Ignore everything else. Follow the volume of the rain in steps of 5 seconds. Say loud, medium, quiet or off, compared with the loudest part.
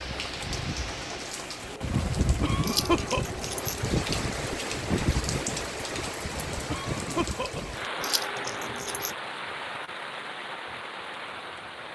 loud, loud, medium.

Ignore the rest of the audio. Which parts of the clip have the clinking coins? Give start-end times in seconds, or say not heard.
2.6-4.0, 8.0-9.2.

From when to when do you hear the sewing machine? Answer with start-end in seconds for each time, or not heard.
0.0-3.8.